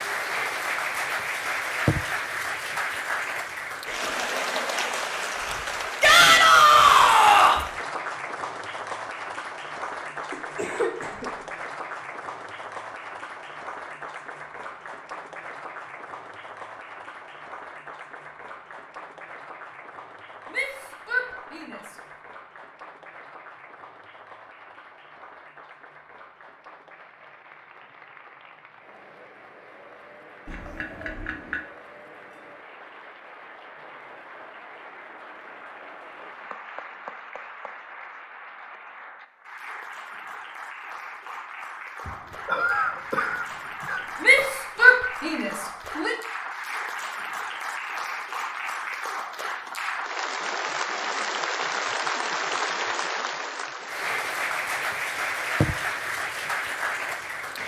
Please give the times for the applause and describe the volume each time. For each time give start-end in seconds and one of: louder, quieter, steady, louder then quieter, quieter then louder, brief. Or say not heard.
0.0-57.6 quieter then louder.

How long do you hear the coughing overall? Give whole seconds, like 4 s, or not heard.
5 s.